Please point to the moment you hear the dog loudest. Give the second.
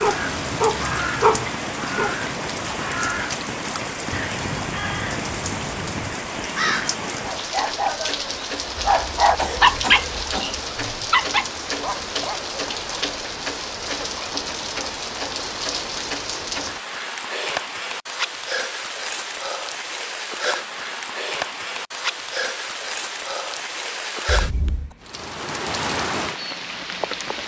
10 s.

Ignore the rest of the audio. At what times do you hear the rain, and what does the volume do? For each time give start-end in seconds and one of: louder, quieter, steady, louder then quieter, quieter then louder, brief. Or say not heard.
0.0-27.4 steady.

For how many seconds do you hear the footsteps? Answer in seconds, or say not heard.
not heard.